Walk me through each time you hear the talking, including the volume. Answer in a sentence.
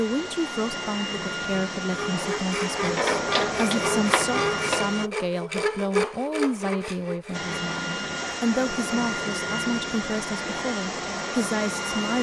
You can hear the talking from 0.0 to 12.1 s, at a steady volume.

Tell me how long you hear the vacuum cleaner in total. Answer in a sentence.
You can hear the vacuum cleaner for 10 seconds altogether.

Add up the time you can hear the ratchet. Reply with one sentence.
You can hear the ratchet for 2 seconds altogether.